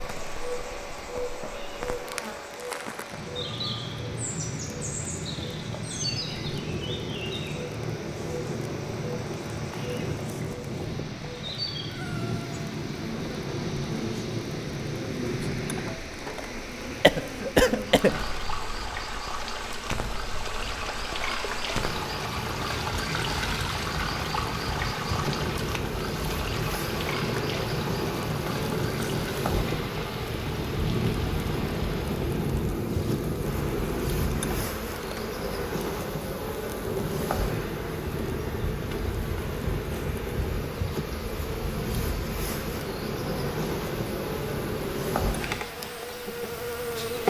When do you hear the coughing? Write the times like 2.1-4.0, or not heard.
17.0-18.1.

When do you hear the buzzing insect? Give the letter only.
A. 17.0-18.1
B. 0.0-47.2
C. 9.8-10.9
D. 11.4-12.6
B.